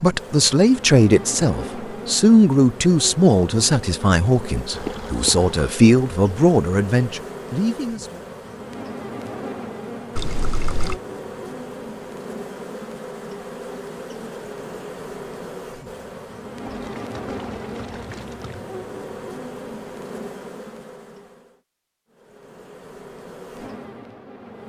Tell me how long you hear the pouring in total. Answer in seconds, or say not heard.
4 s.